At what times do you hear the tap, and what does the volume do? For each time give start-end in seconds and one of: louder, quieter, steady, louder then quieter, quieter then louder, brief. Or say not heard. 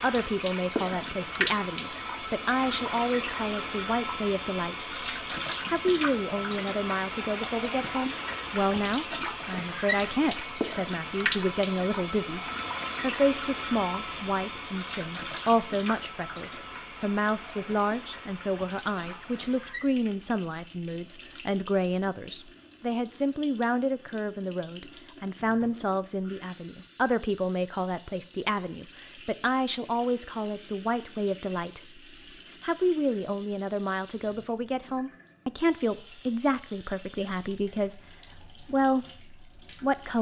0.0-40.1 quieter.